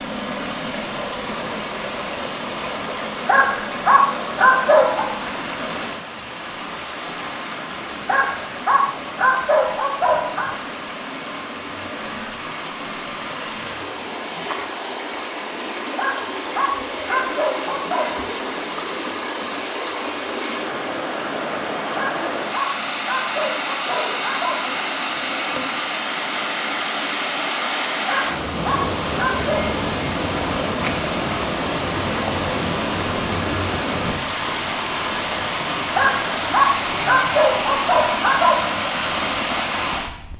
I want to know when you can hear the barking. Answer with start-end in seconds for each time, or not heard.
3.2-5.0, 8.1-10.5, 15.9-18.1, 21.9-24.6, 28.1-29.6, 36.0-38.6.